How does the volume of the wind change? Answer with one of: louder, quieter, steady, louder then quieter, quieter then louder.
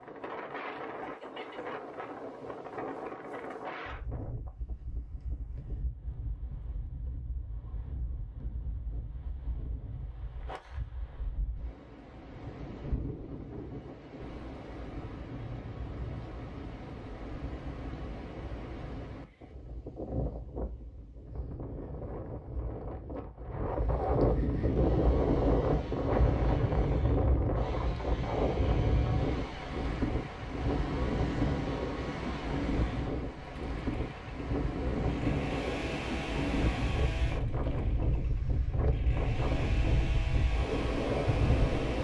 louder.